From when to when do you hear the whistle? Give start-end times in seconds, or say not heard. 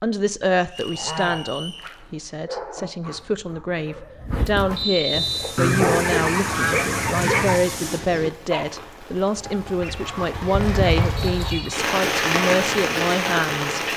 0.7-1.9, 4.8-5.5, 11.2-11.8.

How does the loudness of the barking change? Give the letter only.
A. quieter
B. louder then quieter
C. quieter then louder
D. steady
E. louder
E.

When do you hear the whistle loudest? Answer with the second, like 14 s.
5 s.